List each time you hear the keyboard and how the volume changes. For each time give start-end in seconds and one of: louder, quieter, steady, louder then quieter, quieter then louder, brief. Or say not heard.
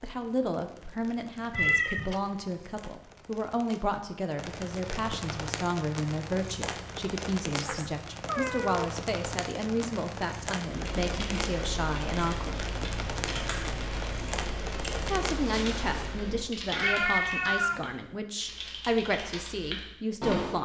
10.7-20.5 steady.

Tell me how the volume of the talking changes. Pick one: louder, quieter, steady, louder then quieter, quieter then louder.
steady.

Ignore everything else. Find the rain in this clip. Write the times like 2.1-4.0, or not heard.
0.0-16.1.